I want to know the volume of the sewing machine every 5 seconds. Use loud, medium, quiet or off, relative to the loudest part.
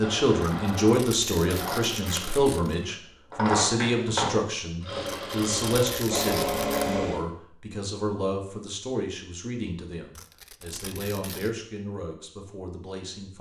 loud, loud, off.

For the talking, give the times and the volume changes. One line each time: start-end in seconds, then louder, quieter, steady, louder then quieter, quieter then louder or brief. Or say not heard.
0.0-13.3 quieter.